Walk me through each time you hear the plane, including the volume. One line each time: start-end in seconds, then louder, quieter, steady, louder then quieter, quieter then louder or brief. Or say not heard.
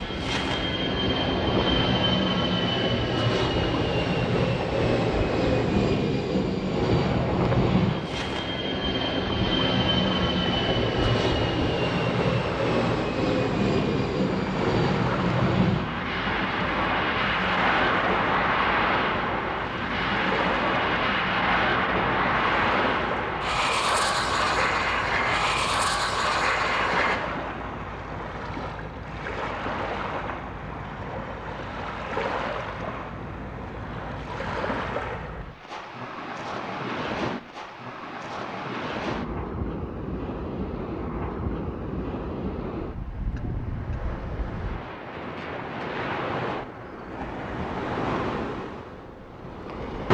0.0-27.2 steady.